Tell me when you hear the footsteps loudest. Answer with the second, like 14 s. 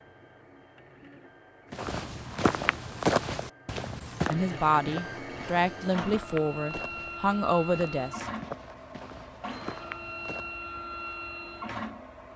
3 s.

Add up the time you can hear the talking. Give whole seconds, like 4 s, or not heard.
4 s.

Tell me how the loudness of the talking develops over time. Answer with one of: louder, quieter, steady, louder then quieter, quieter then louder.
quieter then louder.